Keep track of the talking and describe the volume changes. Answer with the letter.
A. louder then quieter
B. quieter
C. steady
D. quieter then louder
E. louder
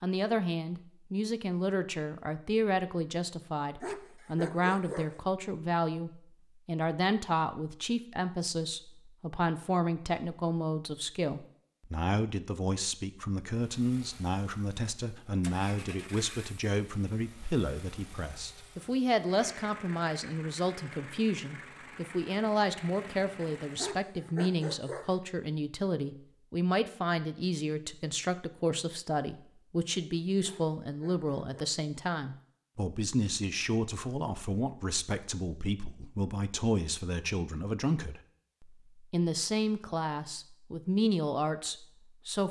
C.